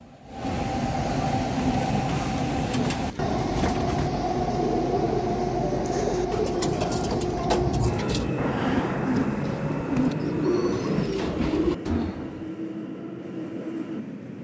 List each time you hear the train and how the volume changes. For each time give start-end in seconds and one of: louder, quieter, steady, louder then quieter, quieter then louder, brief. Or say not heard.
0.0-14.3 quieter.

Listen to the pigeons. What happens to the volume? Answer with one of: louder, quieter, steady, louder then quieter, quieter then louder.
louder.